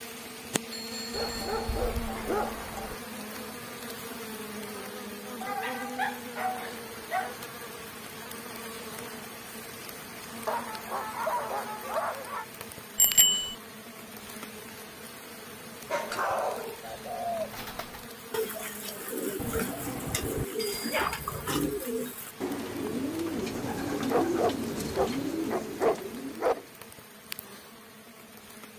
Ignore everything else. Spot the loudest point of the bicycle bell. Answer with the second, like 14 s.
13 s.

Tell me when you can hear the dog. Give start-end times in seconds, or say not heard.
1.1-3.0, 5.4-7.3, 10.4-12.4, 15.8-16.8, 19.4-21.1, 24.1-26.6.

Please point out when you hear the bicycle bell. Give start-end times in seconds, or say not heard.
0.7-1.7, 12.9-13.6, 20.6-21.4.